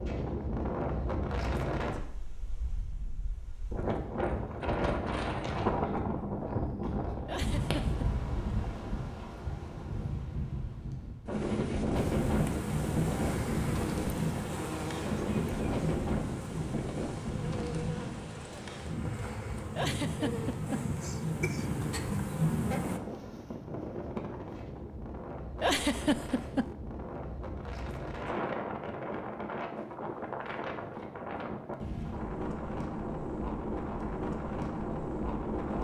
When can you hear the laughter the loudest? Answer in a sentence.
The loudest moment of the laughter is at 26 seconds.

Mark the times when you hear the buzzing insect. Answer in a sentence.
You can hear the buzzing insect from 11.9 to 23.0 s.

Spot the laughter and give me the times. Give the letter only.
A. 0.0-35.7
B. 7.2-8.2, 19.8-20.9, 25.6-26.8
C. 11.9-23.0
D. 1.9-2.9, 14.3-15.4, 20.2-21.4
B.